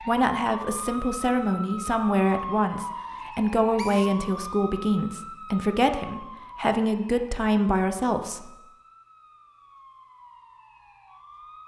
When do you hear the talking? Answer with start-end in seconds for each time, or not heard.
0.1-8.6.